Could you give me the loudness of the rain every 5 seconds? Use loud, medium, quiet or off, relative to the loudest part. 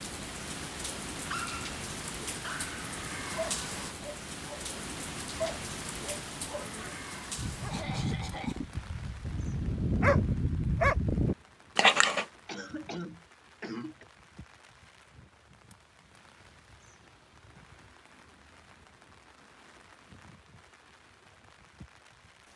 loud, loud, quiet, quiet, quiet.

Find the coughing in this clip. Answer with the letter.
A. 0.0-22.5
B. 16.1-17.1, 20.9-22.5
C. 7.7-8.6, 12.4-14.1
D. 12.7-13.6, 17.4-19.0
C.